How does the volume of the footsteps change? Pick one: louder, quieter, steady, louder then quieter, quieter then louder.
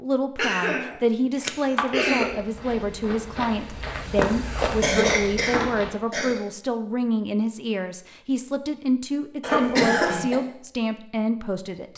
louder then quieter.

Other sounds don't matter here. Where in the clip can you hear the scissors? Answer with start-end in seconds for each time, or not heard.
1.4-2.0.